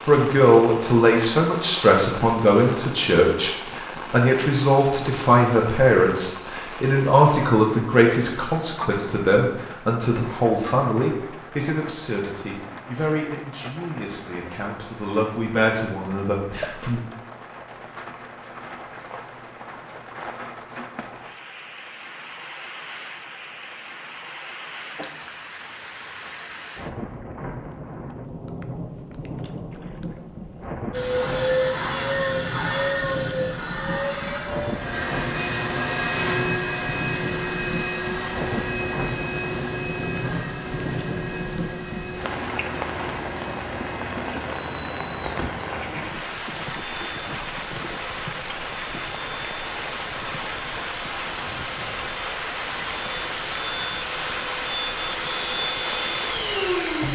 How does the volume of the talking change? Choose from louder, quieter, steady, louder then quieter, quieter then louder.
quieter.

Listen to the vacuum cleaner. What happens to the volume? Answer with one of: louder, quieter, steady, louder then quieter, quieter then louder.
quieter then louder.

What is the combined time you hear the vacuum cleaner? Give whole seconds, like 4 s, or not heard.
26 s.